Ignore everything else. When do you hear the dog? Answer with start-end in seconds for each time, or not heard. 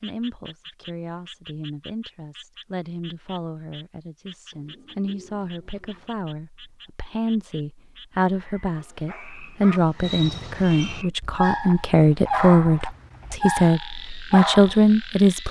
8.7-14.8.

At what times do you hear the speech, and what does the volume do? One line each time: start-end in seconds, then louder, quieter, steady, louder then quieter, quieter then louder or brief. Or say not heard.
0.0-15.4 louder.